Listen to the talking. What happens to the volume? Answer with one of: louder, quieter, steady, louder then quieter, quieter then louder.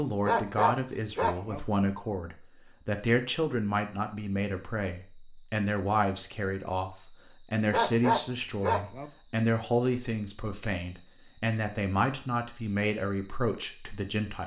steady.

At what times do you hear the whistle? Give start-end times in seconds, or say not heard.
not heard.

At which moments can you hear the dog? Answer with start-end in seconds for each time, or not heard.
0.2-1.6, 7.7-9.1.